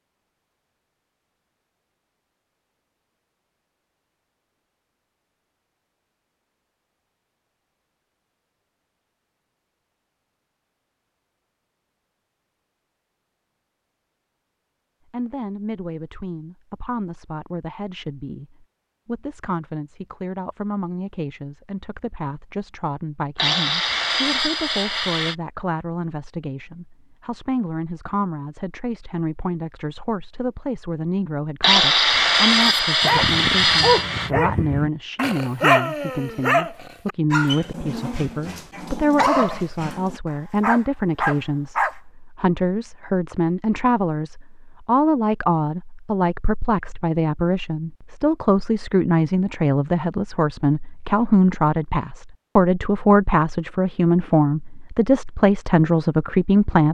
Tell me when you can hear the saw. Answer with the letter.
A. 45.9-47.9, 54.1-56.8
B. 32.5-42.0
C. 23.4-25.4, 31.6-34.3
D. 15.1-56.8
C.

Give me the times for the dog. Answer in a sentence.
You can hear the dog from 32.5 to 42.0 s.